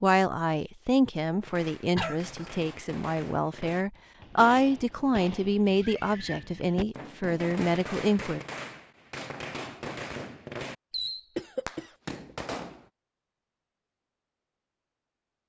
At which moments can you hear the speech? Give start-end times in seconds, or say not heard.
0.0-8.4.